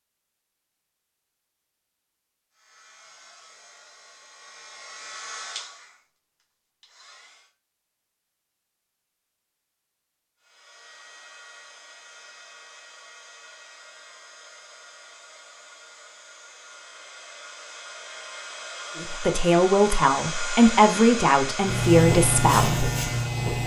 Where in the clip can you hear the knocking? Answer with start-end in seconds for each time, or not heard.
not heard.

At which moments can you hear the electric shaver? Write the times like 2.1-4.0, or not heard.
21.6-23.6.